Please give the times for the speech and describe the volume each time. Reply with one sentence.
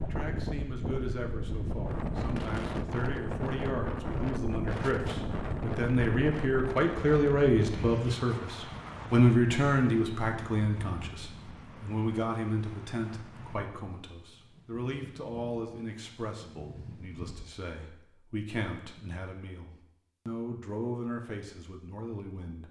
The speech can be heard from 0.0 to 22.6 s, getting louder then quieter.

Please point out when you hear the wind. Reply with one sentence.
You can hear the wind from 0.0 to 17.5 s.